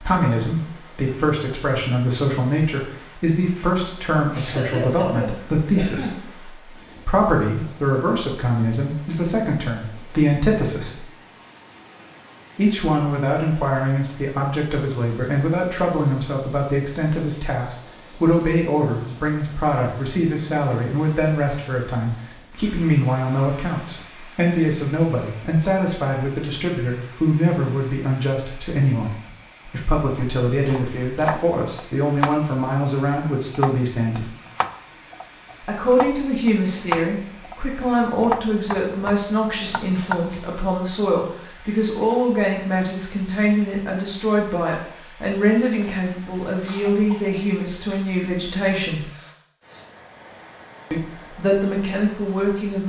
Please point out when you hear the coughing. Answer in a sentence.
The coughing can be heard from 4.2 to 6.2 s and from 46.6 to 47.4 s.